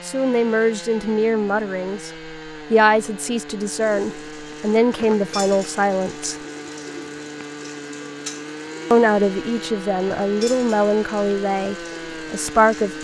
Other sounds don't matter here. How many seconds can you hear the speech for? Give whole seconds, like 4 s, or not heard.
10 s.